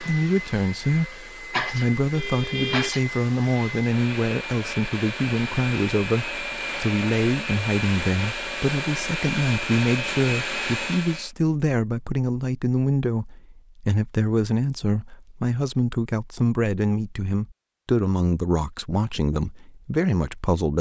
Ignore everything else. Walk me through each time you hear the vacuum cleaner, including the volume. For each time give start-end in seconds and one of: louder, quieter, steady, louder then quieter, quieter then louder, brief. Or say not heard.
0.0-11.3 louder.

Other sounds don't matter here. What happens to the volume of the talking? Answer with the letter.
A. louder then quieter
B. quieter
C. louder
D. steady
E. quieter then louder
D.